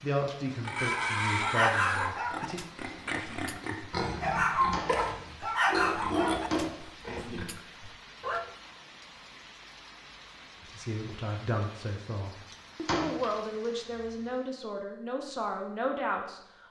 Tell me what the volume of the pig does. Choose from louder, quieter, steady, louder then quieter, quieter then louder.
quieter then louder.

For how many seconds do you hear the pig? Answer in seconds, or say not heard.
7 s.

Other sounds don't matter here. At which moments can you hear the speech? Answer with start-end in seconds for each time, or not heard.
0.0-2.6, 10.7-16.6.